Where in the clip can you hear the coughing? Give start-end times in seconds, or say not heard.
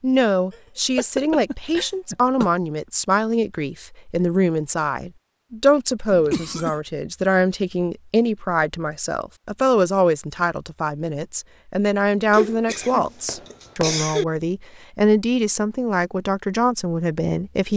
0.5-2.5, 6.1-6.8, 12.3-14.2.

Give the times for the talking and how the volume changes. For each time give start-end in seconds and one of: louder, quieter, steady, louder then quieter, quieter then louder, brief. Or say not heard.
0.0-17.7 steady.